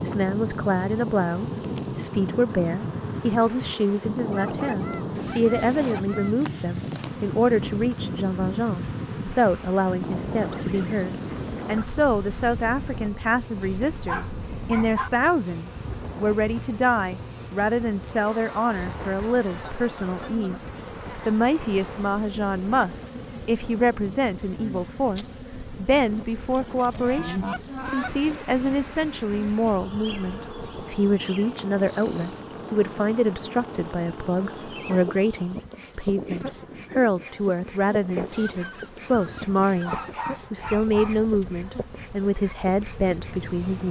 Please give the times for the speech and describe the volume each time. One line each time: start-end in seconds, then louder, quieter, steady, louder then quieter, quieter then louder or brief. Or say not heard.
0.0-43.8 steady.